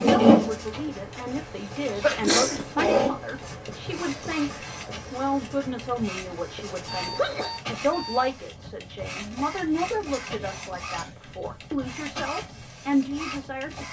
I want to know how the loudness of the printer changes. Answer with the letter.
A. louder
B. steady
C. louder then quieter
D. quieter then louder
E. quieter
E.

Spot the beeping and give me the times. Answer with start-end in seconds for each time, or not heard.
6.8-8.3.